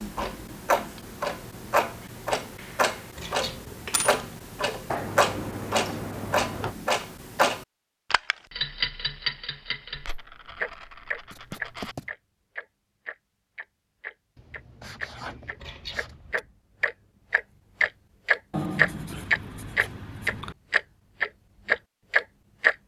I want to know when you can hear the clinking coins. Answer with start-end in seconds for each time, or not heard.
3.1-4.2, 9.9-11.9, 15.6-16.4.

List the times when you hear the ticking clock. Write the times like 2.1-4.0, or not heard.
0.0-22.8.